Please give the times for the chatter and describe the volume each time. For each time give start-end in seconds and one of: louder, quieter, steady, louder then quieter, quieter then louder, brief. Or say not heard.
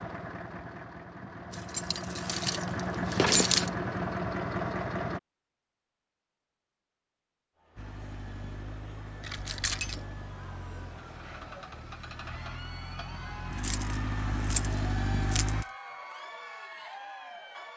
7.5-17.7 louder.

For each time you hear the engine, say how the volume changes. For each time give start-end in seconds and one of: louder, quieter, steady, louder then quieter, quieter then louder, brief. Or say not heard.
0.0-5.2 louder
7.8-15.7 louder.